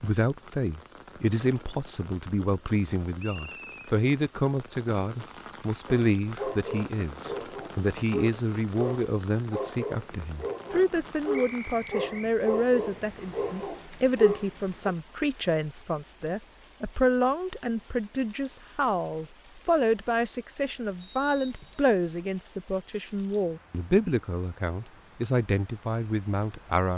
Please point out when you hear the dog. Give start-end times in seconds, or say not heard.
5.8-14.9.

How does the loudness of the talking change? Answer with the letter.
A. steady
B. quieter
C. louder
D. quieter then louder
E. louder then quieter
A.